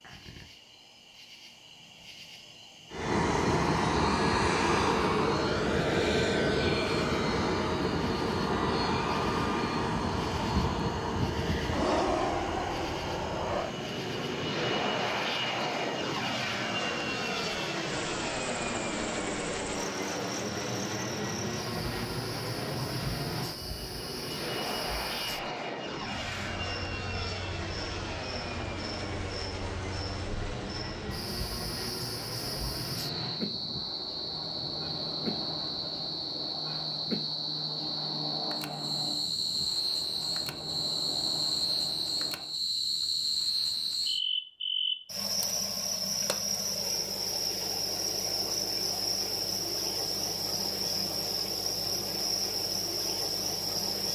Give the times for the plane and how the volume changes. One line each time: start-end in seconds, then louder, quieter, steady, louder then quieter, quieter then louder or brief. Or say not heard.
2.9-42.5 quieter.